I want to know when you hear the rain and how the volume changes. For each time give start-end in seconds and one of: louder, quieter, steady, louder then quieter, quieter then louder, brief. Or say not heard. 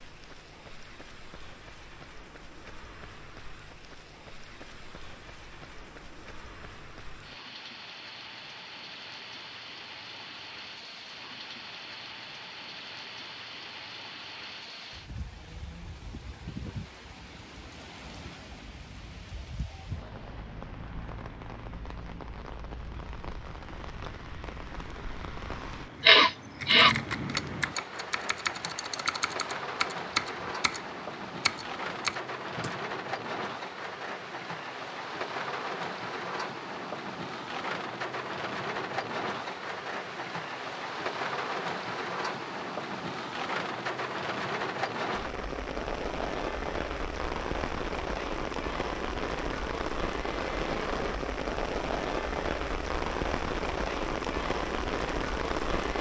0.0-55.9 louder.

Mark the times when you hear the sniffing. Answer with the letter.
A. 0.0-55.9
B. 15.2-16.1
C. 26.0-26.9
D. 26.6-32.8
C.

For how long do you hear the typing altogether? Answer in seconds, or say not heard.
6 s.